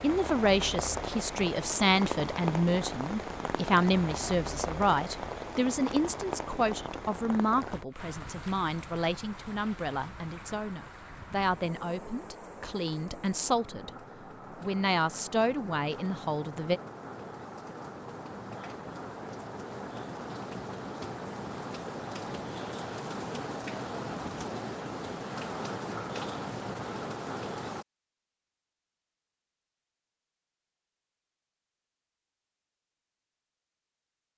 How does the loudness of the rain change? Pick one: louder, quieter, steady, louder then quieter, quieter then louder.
quieter then louder.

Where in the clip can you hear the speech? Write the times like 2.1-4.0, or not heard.
0.0-13.9, 14.6-16.8.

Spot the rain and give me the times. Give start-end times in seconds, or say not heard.
0.0-27.9.